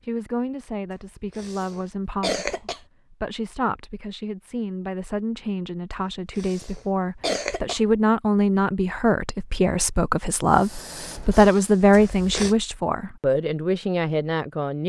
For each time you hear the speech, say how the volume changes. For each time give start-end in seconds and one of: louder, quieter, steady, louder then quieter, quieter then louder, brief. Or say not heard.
0.1-14.8 louder.